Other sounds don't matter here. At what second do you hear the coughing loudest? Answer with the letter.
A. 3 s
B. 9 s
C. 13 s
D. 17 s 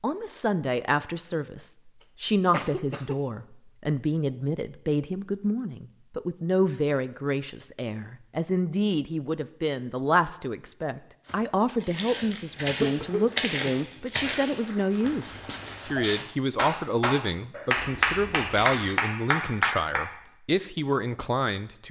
C.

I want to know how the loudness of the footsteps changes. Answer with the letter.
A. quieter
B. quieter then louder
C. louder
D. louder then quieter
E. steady
D.